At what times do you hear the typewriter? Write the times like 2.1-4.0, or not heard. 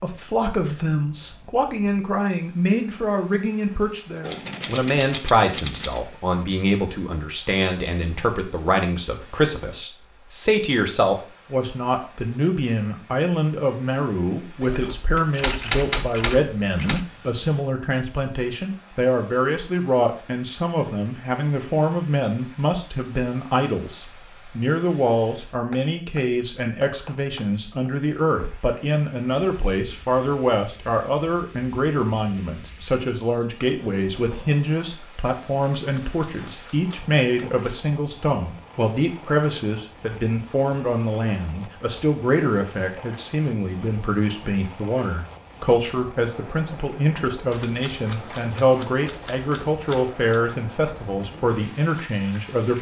4.2-6.0, 14.6-17.1, 35.6-37.8, 47.5-50.4.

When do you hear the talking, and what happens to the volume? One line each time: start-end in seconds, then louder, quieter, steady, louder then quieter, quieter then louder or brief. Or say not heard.
0.0-52.7 steady.